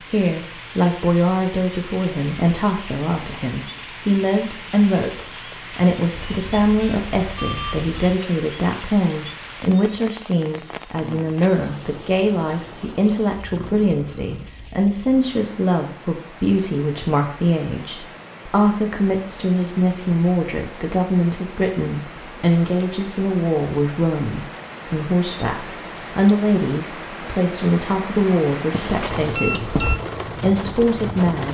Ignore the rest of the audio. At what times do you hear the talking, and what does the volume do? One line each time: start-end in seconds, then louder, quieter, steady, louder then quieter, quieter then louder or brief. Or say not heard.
0.0-31.4 steady.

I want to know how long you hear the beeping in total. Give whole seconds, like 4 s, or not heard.
4 s.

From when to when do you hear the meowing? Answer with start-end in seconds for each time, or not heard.
not heard.